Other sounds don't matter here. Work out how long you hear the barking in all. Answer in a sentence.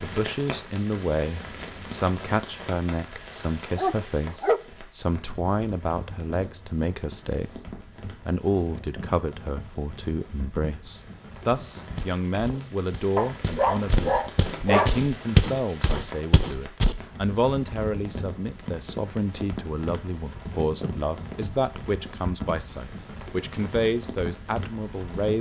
You can hear the barking for 3 seconds altogether.